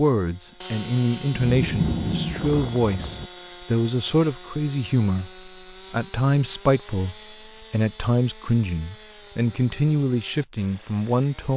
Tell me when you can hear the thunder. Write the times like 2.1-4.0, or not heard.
1.3-3.3.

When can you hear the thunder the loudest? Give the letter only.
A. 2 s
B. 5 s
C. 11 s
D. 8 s
A.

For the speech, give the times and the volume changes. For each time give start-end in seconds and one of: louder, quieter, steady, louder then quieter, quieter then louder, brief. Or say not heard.
0.0-11.5 steady.